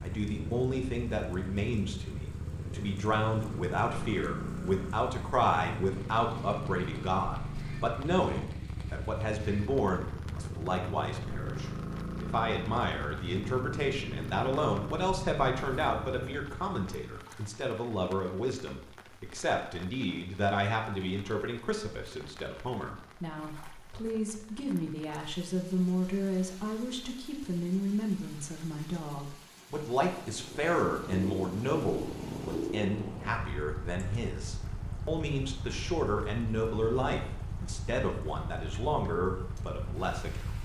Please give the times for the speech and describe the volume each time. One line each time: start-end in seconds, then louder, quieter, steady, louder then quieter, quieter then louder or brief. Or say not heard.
0.0-40.6 steady.